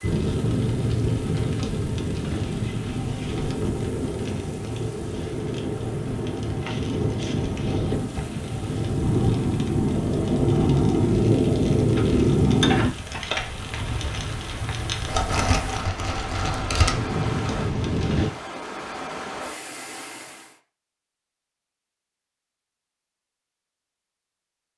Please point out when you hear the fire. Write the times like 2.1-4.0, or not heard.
0.0-18.3.